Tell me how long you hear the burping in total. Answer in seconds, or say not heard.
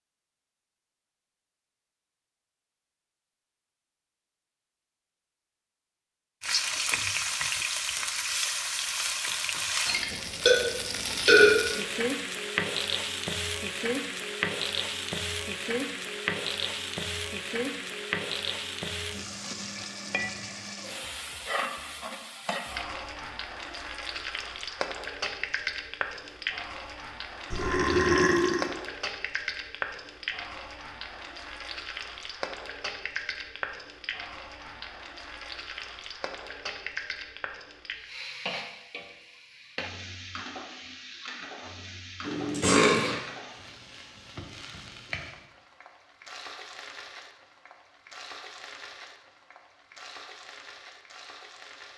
4 s.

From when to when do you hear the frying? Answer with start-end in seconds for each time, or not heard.
6.4-51.9.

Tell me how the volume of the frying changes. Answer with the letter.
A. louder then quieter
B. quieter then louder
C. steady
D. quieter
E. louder
D.